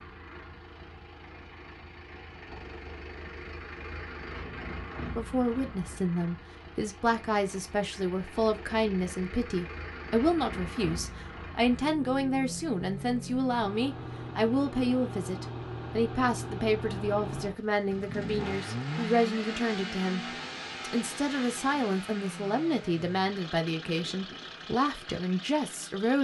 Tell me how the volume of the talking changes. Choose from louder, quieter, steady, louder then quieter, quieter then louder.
steady.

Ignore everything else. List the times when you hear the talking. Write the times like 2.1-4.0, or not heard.
5.2-26.1.